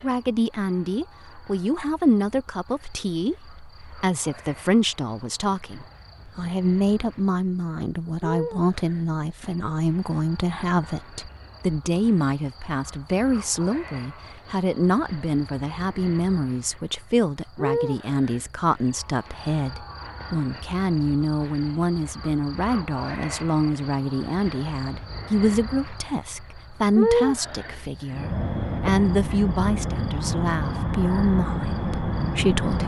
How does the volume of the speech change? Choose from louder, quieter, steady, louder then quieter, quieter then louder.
steady.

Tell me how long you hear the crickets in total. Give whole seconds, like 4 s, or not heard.
33 s.